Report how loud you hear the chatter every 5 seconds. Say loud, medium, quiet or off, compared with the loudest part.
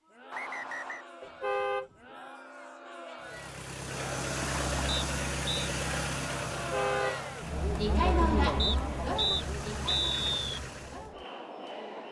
quiet, loud, medium.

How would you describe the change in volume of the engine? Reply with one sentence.
The loudness of the engine goes down, then up.